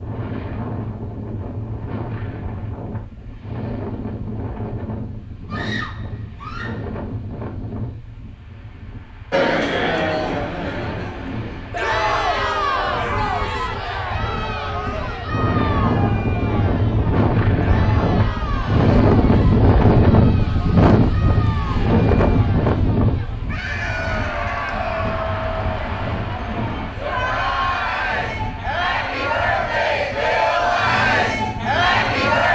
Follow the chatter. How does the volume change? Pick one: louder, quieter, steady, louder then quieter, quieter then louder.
quieter then louder.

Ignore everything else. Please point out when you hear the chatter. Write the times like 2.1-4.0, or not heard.
9.3-32.4.